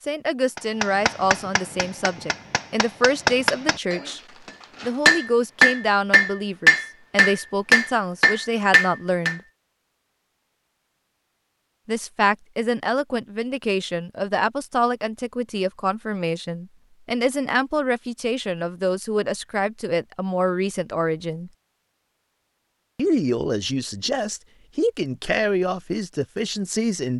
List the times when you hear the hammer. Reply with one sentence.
The hammer can be heard from 0.6 to 9.3 s.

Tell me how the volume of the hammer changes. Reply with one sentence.
The loudness of the hammer goes up.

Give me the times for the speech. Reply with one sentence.
You can hear the speech from 0.0 to 4.2 s, from 4.8 to 9.4 s, from 11.8 to 21.5 s and from 22.9 to 27.1 s.